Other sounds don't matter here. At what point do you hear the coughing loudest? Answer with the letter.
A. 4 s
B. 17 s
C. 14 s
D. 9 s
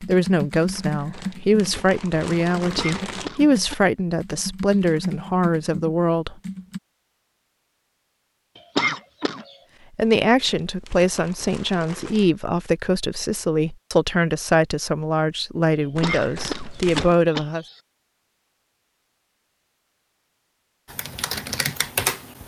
D.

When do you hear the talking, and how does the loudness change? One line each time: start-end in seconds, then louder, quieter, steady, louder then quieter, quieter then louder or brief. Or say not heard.
0.0-6.3 steady
9.9-17.6 steady.